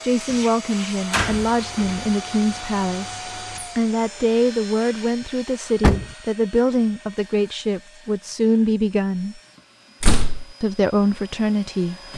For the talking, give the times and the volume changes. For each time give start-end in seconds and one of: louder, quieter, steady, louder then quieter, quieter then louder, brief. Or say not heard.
0.0-9.4 steady
10.6-12.1 brief.